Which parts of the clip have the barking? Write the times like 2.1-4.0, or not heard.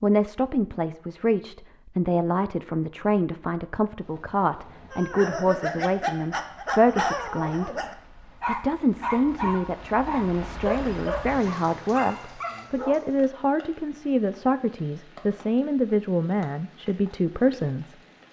4.9-13.0.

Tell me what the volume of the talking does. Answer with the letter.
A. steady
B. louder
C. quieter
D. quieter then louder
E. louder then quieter
A.